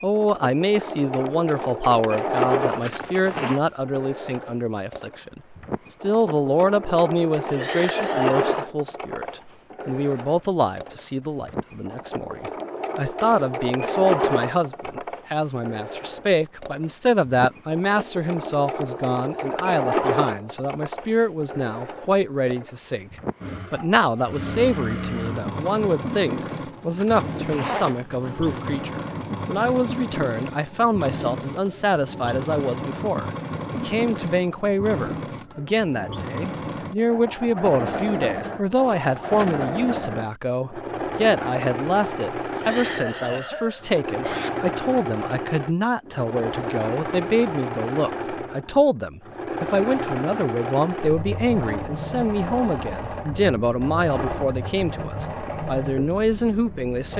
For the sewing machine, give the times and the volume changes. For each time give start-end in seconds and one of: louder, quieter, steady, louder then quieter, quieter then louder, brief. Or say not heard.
0.0-57.1 steady.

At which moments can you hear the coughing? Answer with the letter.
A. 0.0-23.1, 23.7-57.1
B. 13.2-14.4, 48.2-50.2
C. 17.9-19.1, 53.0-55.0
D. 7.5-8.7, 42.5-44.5
D.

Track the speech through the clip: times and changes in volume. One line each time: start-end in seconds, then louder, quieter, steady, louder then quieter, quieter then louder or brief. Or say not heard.
0.0-23.1 steady
23.7-57.1 steady.